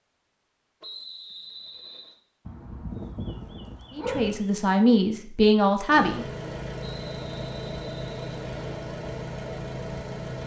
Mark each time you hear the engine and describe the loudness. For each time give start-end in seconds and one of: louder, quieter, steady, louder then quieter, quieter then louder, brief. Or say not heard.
5.8-10.4 steady.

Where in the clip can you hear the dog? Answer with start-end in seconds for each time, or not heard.
2.5-4.5.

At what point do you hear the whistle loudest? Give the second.
1 s.